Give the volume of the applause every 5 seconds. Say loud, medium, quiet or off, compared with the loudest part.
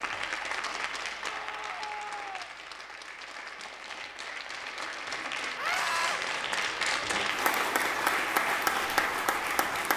medium, loud.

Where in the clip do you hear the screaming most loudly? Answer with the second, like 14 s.
6 s.